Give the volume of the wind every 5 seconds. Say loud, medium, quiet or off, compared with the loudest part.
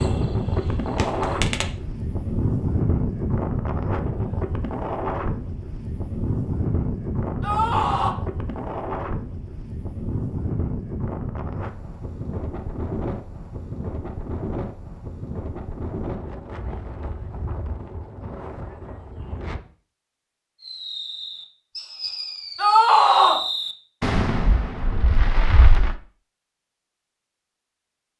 loud, loud, medium, medium, off, off.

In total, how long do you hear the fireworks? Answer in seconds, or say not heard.
7 s.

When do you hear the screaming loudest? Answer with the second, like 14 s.
23 s.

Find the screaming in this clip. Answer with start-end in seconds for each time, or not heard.
7.4-8.2, 22.6-23.4.